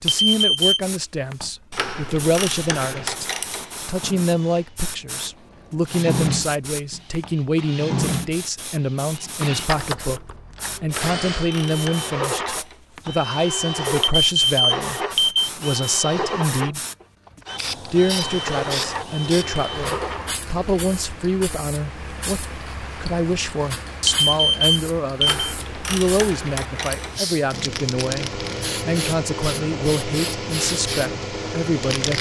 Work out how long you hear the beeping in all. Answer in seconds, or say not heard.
4 s.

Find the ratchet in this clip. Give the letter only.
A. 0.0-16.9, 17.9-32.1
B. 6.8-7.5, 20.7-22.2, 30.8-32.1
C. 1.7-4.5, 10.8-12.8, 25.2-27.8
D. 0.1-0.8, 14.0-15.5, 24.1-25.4
C.